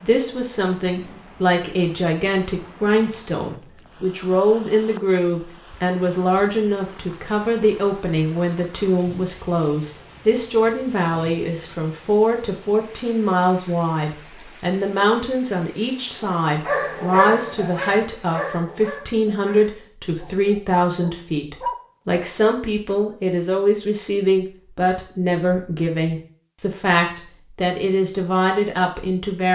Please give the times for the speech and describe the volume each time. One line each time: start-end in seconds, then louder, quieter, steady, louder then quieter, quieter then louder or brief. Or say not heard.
0.0-29.4 steady.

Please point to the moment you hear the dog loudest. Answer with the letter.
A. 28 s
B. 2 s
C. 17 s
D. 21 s
C.